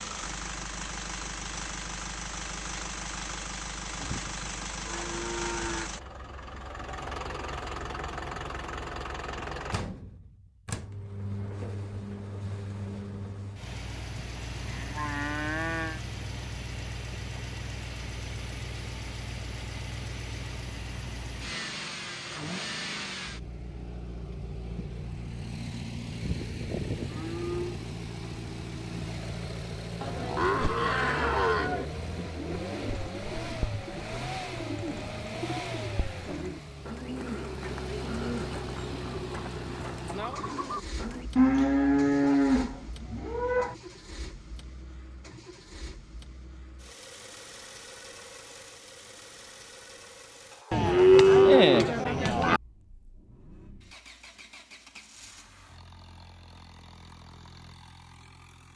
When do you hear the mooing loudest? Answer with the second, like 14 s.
51 s.